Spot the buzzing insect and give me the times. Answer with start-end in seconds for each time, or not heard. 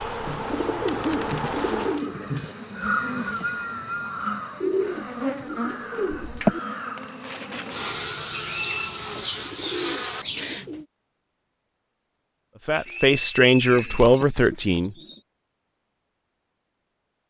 0.0-10.7.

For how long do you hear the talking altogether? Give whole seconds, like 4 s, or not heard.
2 s.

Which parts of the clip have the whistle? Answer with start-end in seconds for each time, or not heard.
2.4-4.2, 8.4-9.0, 12.8-14.2.